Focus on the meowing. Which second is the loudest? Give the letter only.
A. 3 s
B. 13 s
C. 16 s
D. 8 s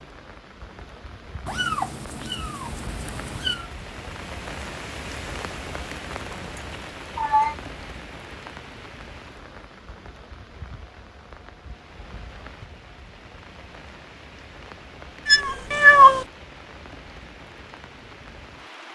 C.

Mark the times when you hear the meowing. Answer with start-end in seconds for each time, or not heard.
1.4-3.6, 6.5-7.5, 15.2-16.2.